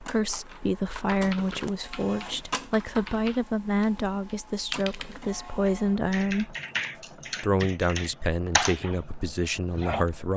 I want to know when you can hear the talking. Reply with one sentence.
You can hear the talking from 0.0 to 6.5 s and from 7.4 to 10.3 s.